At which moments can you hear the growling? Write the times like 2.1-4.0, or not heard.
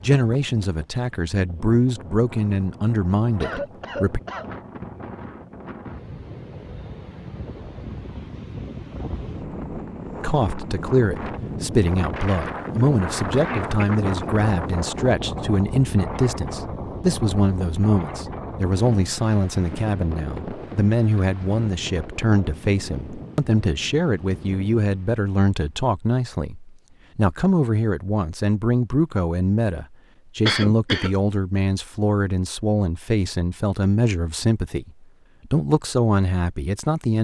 not heard.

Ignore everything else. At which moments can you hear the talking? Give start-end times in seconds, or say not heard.
0.0-4.2, 10.2-37.1.